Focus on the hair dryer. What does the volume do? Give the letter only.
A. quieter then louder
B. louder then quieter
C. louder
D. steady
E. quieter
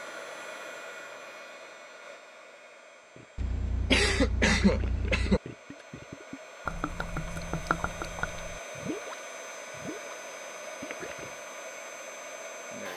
A.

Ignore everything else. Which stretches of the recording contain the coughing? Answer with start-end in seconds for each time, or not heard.
3.4-5.4.